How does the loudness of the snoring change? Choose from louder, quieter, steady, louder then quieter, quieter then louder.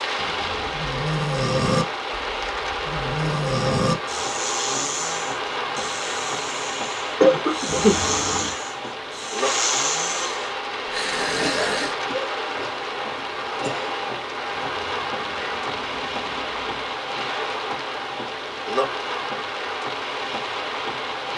quieter then louder.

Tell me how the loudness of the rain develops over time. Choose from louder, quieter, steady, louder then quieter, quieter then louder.
steady.